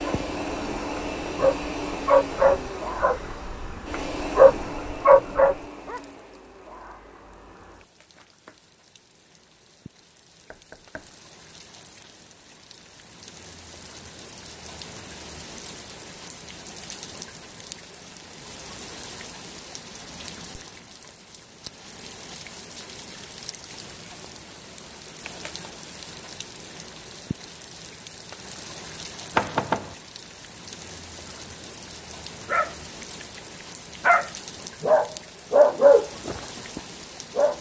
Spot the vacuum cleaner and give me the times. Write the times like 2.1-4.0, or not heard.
0.0-8.6.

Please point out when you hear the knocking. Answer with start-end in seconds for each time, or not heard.
10.5-11.1, 29.3-29.9.